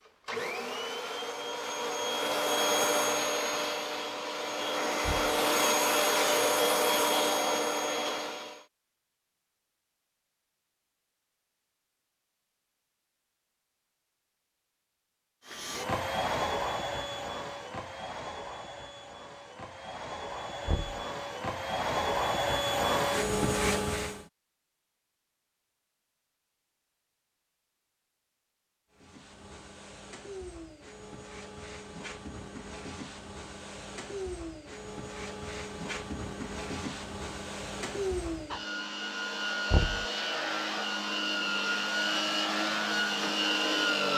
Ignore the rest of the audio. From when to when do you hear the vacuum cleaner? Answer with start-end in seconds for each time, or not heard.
0.1-8.7, 15.4-24.2, 28.9-44.1.